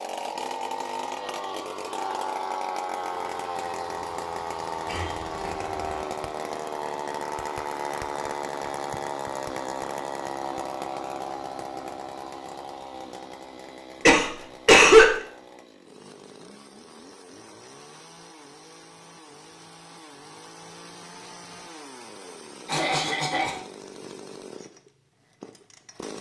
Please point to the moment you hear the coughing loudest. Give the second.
15 s.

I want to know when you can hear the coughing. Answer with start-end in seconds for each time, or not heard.
4.8-6.0, 14.1-15.1, 22.6-23.6.